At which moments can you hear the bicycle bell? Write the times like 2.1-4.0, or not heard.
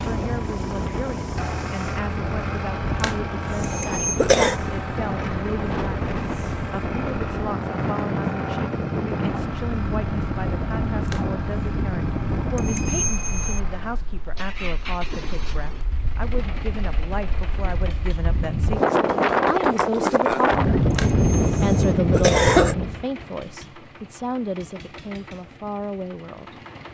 3.6-4.2, 12.6-13.6, 20.9-21.7.